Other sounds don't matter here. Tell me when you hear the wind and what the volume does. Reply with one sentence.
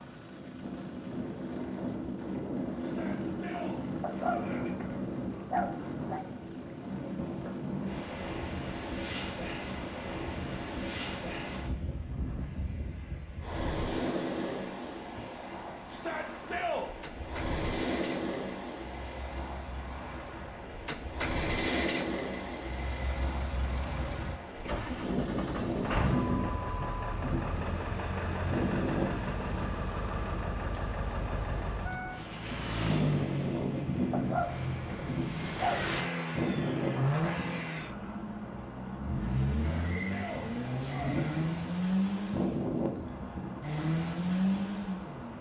You can hear the wind from 0.0 to 45.3 s, at a steady volume.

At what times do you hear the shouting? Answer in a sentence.
The shouting can be heard from 2.8 to 4.7 s, from 15.9 to 16.9 s and from 39.5 to 41.4 s.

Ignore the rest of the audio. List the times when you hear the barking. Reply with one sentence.
The barking can be heard from 4.0 to 6.2 s and from 34.1 to 36.0 s.